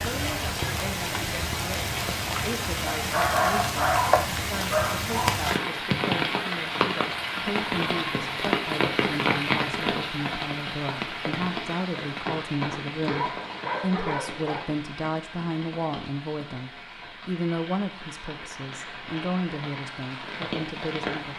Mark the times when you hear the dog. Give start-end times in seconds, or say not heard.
2.9-5.3, 13.1-14.7.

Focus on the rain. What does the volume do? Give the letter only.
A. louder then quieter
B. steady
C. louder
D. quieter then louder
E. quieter
E.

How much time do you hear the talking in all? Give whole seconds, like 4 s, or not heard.
21 s.